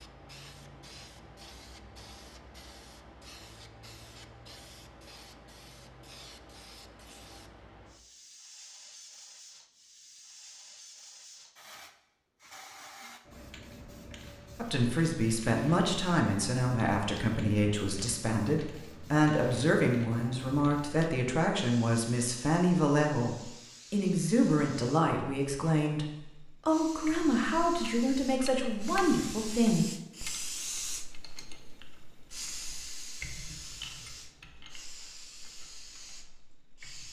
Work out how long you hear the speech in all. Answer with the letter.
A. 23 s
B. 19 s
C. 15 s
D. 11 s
C.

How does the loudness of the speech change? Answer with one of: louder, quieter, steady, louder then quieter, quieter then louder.
steady.